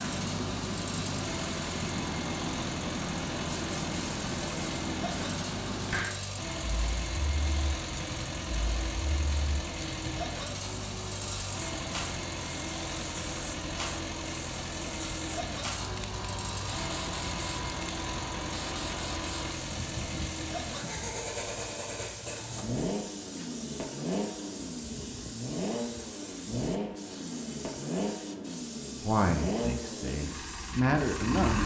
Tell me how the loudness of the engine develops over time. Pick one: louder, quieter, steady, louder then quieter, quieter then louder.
steady.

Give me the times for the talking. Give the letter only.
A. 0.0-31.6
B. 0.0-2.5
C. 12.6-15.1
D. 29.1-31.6
D.